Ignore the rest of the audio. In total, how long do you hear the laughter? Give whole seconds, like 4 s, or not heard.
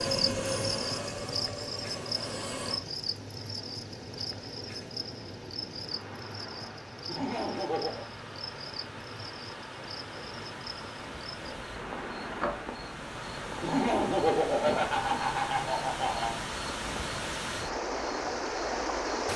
4 s.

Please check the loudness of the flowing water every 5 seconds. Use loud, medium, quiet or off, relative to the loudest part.
quiet, medium, medium, loud.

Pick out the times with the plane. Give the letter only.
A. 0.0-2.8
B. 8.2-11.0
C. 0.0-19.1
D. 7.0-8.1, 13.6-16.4
A.